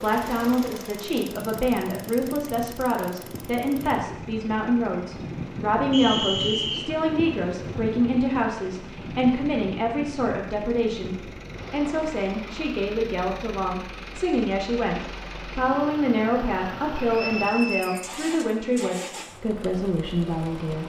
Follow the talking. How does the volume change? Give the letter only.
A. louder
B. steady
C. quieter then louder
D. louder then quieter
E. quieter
B.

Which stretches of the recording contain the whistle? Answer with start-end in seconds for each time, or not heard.
5.9-6.8, 16.9-18.1.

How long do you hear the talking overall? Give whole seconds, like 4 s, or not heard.
21 s.